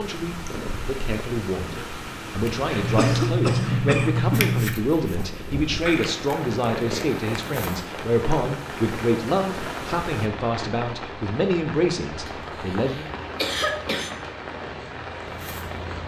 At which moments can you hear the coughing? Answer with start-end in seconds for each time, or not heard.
2.8-4.8, 12.2-14.2.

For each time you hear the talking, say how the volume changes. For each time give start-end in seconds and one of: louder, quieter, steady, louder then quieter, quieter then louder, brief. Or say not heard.
0.0-13.1 steady.